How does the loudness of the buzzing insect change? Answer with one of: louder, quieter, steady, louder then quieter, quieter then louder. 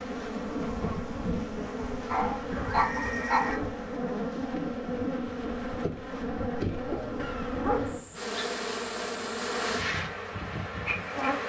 steady.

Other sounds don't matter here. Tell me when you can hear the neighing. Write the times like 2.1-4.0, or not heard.
2.5-3.6, 7.2-8.2.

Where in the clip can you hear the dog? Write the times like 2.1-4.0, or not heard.
2.1-3.6, 6.9-8.0.